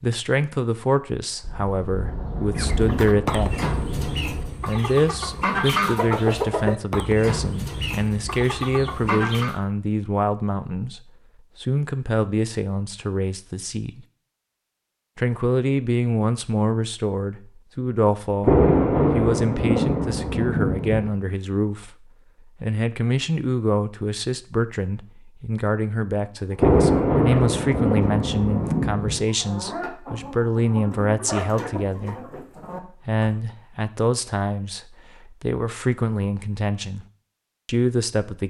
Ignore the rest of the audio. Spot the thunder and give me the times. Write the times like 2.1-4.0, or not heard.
1.4-4.5, 18.4-21.1, 26.6-29.2.